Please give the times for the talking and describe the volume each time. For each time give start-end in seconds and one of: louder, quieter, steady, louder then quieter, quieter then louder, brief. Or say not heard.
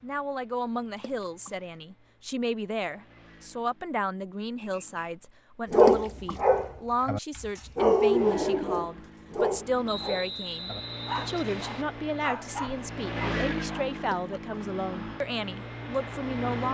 0.0-16.7 steady.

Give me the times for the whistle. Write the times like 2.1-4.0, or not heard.
4.5-5.2, 9.8-11.8.